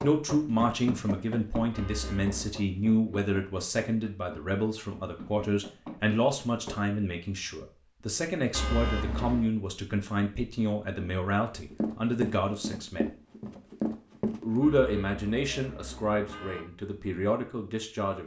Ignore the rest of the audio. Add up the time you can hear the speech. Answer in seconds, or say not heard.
17 s.